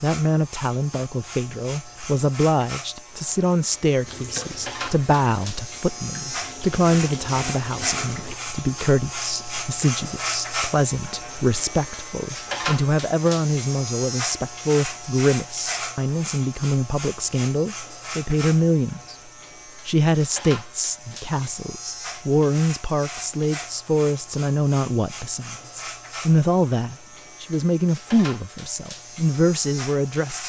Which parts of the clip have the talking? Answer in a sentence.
You can hear the talking from 0.0 to 19.1 s and from 19.9 to 30.4 s.